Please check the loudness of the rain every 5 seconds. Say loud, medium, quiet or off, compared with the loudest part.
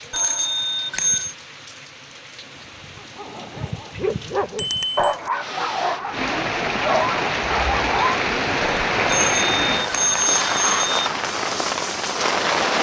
quiet, loud, loud.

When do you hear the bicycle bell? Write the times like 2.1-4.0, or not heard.
0.1-1.4, 4.5-5.2, 9.1-10.9.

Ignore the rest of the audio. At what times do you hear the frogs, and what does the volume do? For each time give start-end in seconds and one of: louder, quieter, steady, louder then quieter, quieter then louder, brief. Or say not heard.
not heard.